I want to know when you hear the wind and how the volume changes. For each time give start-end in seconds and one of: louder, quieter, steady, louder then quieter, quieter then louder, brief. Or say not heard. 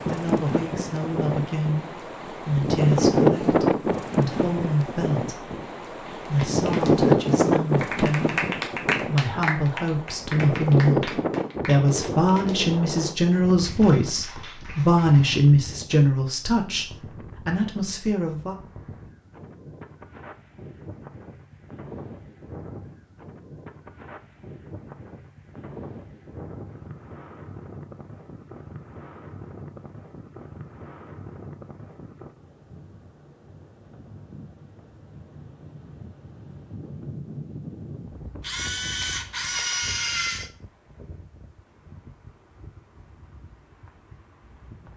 0.0-44.9 quieter.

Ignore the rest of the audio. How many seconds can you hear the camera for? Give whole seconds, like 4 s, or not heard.
2 s.